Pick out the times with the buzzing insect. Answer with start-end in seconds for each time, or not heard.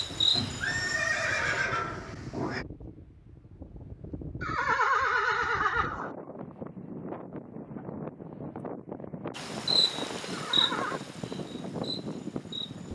0.0-1.6, 9.3-12.8.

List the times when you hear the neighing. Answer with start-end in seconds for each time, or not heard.
0.3-2.6, 4.4-6.1, 10.3-11.0.